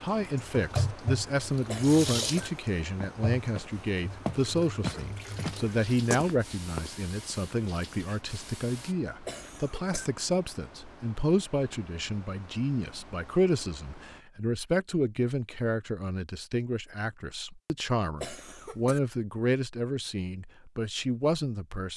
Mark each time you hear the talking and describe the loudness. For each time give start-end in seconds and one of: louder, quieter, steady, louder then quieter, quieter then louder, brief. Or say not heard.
0.0-21.9 steady.